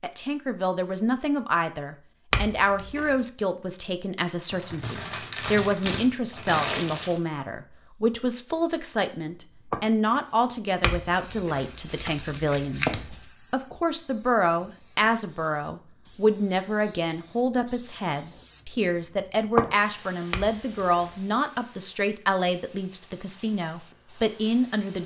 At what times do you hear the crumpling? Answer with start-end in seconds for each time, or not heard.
4.5-7.2.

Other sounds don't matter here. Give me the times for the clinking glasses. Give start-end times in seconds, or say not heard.
2.3-3.1, 10.8-13.2, 20.3-21.1.